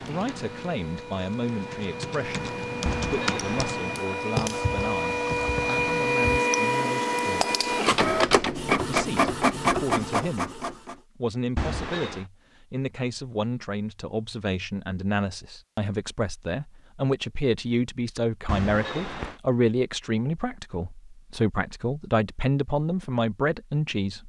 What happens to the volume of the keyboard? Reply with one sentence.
The volume of the keyboard goes up, then down.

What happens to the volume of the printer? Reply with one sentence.
The loudness of the printer goes up.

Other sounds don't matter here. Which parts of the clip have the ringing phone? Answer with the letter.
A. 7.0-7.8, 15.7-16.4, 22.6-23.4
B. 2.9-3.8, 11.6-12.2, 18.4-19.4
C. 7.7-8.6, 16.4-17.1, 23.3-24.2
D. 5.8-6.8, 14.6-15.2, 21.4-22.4
B.